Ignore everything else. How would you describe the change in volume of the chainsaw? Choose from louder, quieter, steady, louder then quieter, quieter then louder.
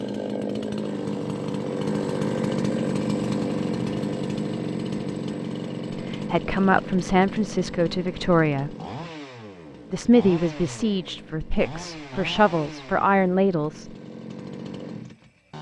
quieter.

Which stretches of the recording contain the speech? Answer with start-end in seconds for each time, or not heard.
6.0-8.8, 9.9-13.9.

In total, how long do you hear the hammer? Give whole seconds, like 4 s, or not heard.
not heard.